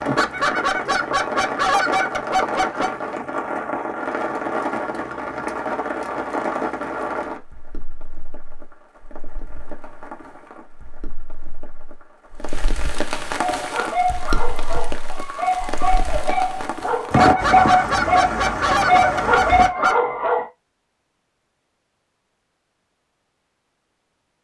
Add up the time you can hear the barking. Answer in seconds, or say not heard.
7 s.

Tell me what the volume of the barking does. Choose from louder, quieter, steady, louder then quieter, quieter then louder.
louder.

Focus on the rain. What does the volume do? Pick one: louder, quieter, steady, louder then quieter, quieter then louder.
quieter then louder.